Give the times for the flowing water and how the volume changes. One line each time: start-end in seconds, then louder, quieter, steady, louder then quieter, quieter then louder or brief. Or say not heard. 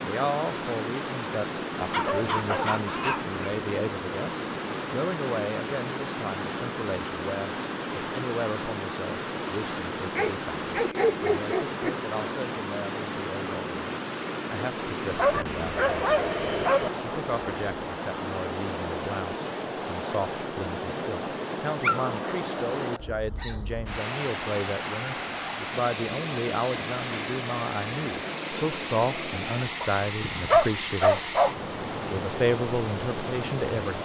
0.0-33.9 steady.